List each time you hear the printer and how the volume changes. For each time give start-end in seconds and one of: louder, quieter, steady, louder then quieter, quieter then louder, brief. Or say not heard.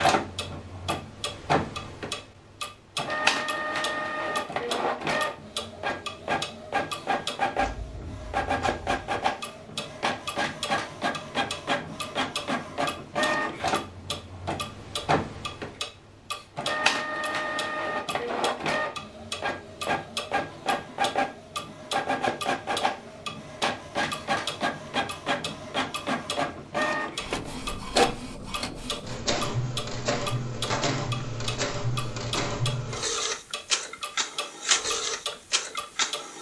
0.0-36.3 steady.